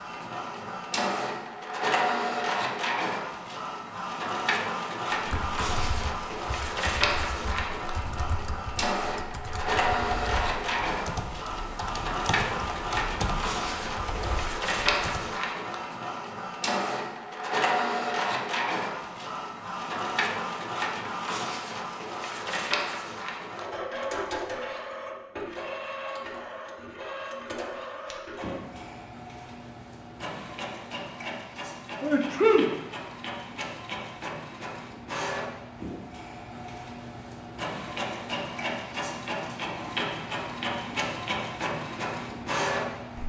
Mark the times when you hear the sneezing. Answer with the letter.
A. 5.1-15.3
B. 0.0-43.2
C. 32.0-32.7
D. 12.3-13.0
C.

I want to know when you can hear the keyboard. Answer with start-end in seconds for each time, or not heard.
5.1-15.3.